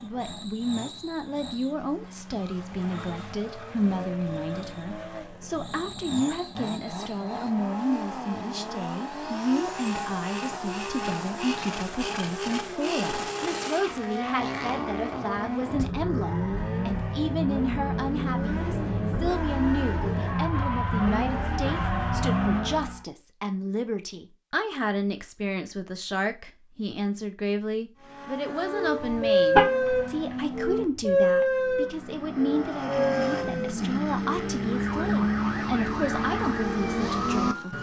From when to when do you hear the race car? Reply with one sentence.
You can hear the race car from 0.0 to 23.1 s and from 27.9 to 37.7 s.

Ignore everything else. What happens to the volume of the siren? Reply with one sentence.
The volume of the siren goes down.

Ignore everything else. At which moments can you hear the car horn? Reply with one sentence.
The car horn can be heard from 29.0 to 30.4 s.